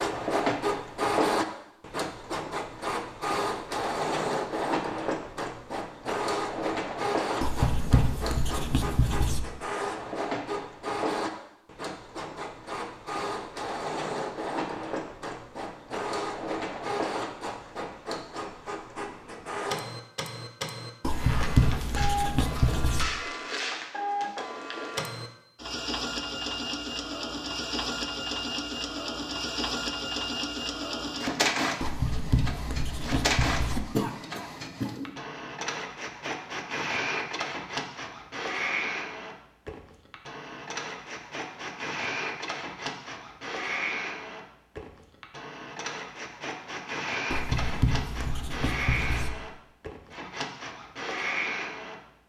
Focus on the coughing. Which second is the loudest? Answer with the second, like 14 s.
34 s.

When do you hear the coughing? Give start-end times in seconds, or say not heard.
33.8-35.1.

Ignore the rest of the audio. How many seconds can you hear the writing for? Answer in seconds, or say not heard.
8 s.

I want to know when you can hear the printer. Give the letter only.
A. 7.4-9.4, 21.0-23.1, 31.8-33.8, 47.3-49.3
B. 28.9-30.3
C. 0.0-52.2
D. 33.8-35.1
C.